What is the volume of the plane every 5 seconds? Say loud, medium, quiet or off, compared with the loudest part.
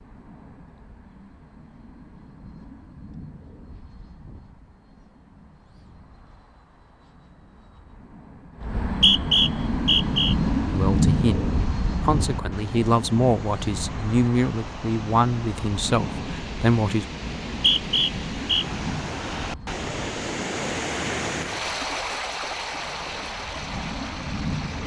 quiet, medium, loud, medium, medium.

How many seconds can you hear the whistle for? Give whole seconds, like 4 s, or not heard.
3 s.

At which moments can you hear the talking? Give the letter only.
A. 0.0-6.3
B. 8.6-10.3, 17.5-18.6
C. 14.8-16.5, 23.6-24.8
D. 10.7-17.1
D.